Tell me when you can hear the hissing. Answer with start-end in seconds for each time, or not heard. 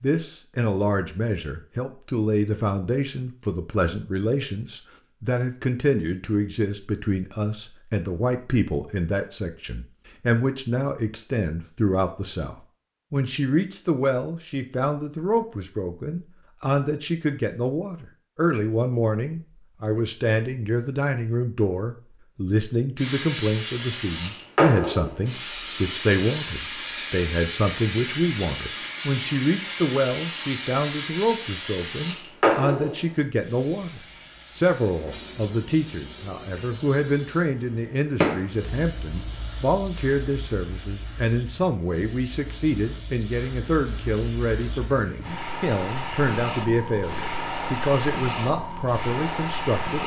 22.9-50.0.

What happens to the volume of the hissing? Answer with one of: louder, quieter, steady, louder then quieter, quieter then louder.
quieter then louder.